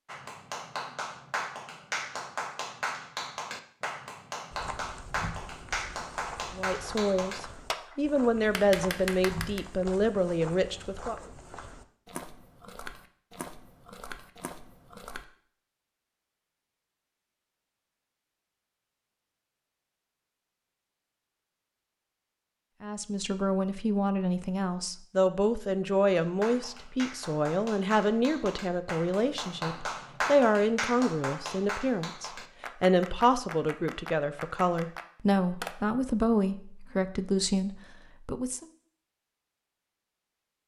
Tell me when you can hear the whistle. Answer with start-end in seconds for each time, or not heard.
not heard.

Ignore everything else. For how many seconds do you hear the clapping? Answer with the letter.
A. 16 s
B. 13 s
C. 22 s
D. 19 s
D.